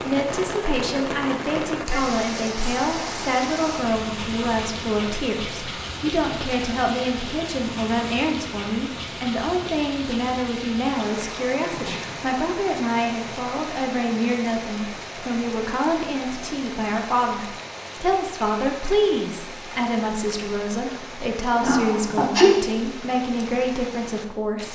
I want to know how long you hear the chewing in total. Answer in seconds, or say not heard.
not heard.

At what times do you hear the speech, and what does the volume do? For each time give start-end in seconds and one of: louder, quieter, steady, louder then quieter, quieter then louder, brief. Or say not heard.
0.0-24.7 steady.